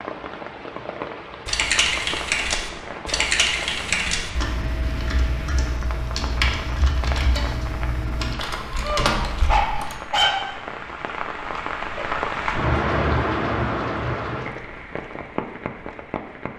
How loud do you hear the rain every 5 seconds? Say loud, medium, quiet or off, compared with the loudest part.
medium, medium, loud, medium.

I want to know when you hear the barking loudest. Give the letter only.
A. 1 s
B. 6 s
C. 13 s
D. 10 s
D.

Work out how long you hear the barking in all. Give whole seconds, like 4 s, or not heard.
2 s.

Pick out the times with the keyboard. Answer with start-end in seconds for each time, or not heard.
1.4-9.9.